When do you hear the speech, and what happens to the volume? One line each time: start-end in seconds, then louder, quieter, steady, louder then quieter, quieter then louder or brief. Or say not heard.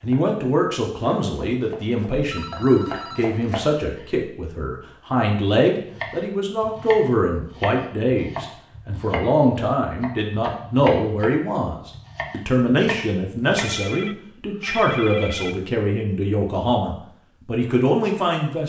0.0-18.6 steady.